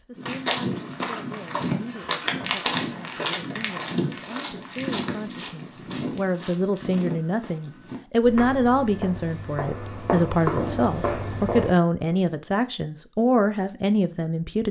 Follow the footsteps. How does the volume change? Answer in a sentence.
The loudness of the footsteps goes down, then up.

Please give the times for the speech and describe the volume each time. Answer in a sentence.
The speech can be heard from 0.0 to 14.6 s, getting louder.